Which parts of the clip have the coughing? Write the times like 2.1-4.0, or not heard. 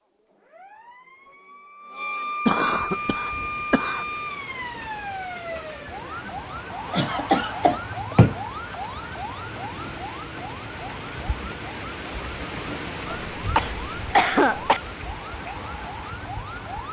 2.5-4.0, 6.9-8.4, 13.1-14.8.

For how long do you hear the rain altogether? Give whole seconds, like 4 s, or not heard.
14 s.